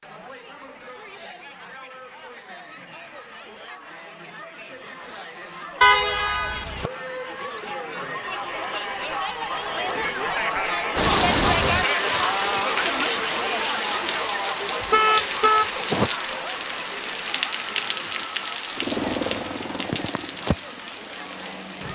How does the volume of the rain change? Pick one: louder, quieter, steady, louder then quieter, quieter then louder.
quieter.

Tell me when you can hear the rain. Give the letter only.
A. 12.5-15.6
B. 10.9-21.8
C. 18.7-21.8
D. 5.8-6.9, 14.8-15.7
B.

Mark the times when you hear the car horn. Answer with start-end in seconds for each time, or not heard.
5.8-6.9, 14.8-15.7.